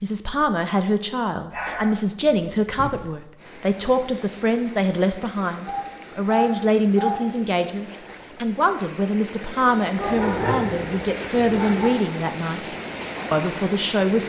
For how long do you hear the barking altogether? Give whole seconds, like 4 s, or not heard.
5 s.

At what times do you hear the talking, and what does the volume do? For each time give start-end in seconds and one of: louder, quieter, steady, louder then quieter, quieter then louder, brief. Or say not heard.
0.0-14.2 steady.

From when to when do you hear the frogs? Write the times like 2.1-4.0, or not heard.
not heard.